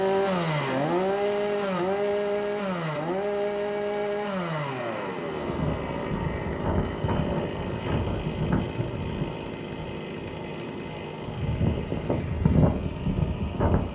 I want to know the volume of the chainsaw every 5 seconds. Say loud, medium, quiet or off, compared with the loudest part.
loud, medium, medium.